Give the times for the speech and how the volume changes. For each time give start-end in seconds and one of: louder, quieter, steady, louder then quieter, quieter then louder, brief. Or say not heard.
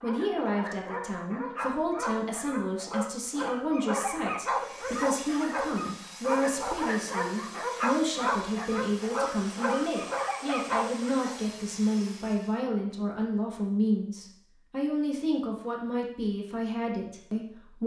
0.0-17.8 steady.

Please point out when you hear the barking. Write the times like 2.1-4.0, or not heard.
0.0-11.4.